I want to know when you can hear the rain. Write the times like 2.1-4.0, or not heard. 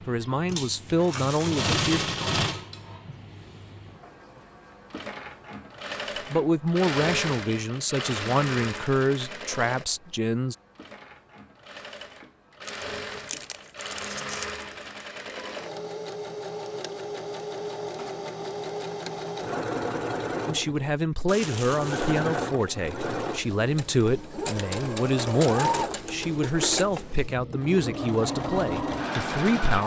not heard.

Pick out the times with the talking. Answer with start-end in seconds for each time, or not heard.
0.1-2.0, 6.2-10.6, 20.4-29.8.